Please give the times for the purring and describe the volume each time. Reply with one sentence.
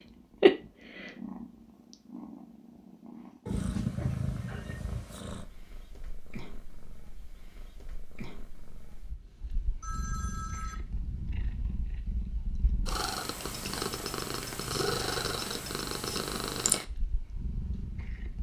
You can hear the purring from 0.1 to 18.3 s, getting quieter then louder.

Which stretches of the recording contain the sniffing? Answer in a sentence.
The sniffing can't be heard in this clip.